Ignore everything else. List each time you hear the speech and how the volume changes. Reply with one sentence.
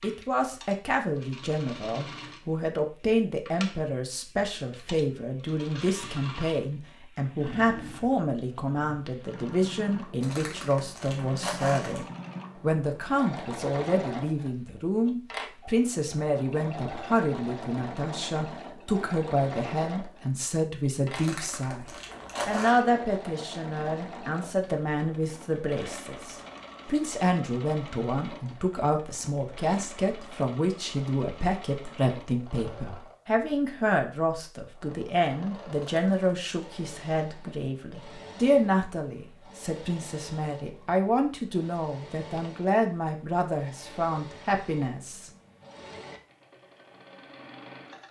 The speech can be heard from 0.0 to 45.3 s, at a steady volume.